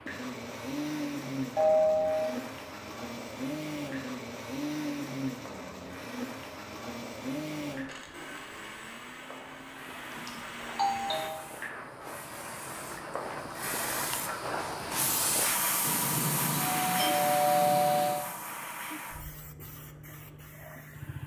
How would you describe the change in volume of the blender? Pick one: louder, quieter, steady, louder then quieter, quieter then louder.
quieter.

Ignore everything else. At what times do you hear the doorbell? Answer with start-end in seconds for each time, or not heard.
1.6-2.3, 10.1-11.5, 15.8-18.2.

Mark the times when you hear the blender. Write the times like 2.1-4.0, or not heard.
0.0-11.3.